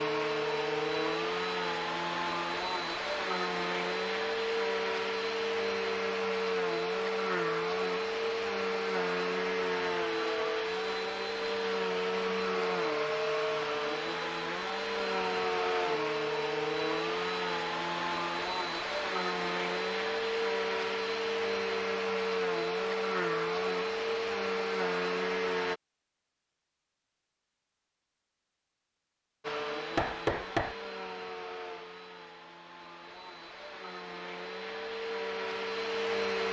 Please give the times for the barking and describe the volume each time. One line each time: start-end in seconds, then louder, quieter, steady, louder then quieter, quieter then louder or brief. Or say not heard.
not heard.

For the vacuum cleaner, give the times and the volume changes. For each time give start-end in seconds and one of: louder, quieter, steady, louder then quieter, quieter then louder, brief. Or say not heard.
0.0-25.8 steady
29.4-36.4 quieter then louder.